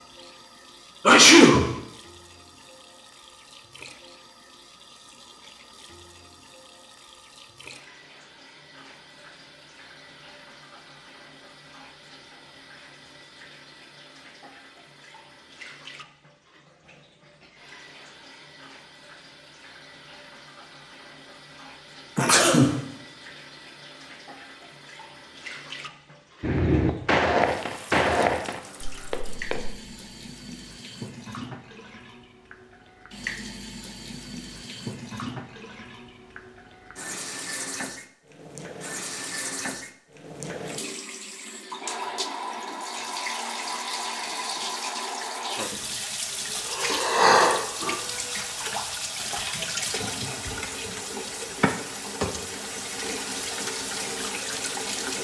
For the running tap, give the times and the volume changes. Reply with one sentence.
You can hear the running tap from 0.0 to 55.1 s, getting louder.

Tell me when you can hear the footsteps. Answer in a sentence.
You can hear the footsteps from 26.4 to 29.8 s.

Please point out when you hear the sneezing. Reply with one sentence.
The sneezing can be heard from 1.1 to 1.6 s, from 22.1 to 22.8 s and from 46.7 to 48.0 s.